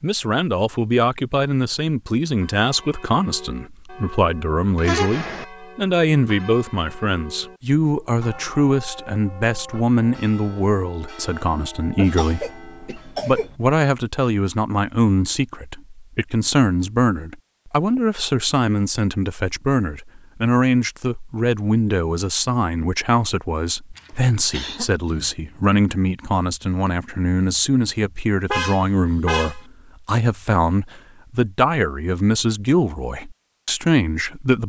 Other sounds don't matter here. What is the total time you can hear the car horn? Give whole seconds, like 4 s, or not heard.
2 s.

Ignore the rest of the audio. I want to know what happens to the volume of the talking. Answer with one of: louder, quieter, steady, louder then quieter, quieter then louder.
steady.